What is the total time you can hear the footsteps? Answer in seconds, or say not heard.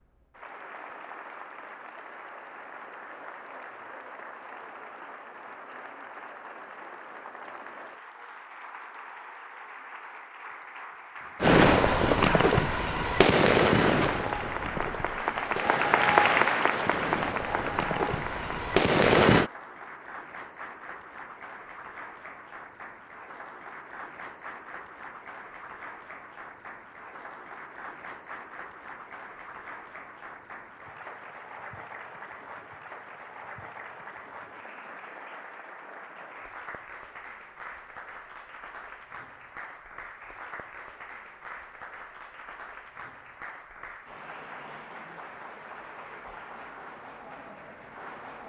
not heard.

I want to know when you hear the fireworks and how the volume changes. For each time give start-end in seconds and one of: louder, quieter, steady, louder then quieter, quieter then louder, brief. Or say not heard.
11.4-19.5 quieter then louder.